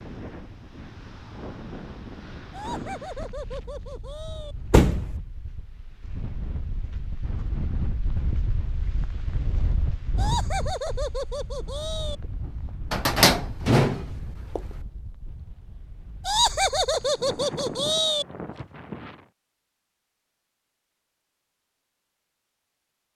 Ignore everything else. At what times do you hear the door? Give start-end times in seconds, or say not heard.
4.7-5.2, 12.9-14.6.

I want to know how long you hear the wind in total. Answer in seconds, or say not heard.
19 s.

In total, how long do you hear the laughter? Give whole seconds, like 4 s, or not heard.
6 s.